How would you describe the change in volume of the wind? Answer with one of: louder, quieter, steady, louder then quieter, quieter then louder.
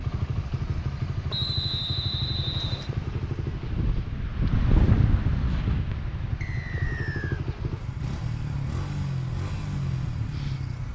louder then quieter.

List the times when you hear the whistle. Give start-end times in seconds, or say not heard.
1.3-2.9, 6.4-7.4.